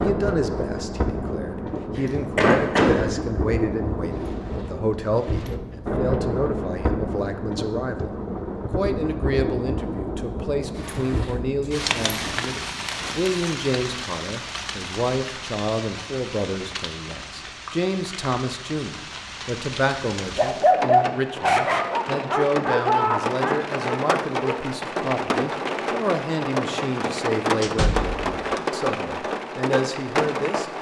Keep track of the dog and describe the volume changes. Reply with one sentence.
The volume of the dog goes down.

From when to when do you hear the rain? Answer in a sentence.
The rain can be heard from 0.0 to 30.7 s.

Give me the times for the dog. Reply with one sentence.
The dog can be heard from 20.4 to 24.6 s.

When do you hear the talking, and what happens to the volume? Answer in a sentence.
You can hear the talking from 0.0 to 30.7 s, at a steady volume.